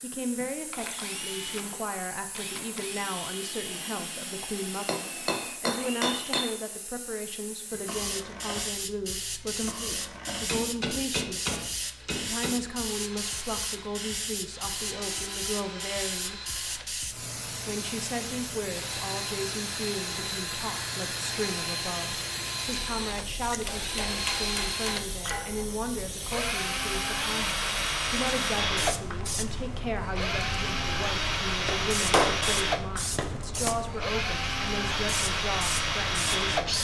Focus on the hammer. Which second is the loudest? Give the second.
32 s.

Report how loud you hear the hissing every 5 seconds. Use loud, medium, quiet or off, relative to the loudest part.
medium, loud, loud, loud, loud, loud, loud, loud.